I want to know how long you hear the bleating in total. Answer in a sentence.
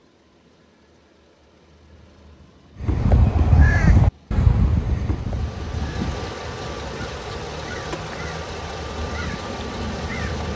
The bleating can't be heard in this clip.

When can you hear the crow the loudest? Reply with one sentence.
The loudest moment of the crow is at 4 seconds.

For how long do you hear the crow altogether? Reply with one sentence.
You can hear the crow for 8 seconds altogether.